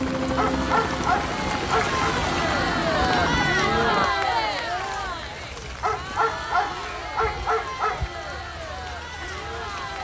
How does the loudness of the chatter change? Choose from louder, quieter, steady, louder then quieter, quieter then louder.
louder then quieter.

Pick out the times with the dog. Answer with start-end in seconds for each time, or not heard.
0.3-2.0, 5.8-8.0.